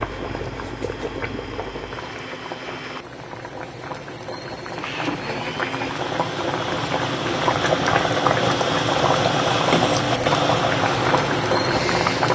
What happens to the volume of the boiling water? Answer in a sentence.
The loudness of the boiling water goes up.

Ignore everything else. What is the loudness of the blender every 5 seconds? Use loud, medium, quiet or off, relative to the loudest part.
medium, loud, loud.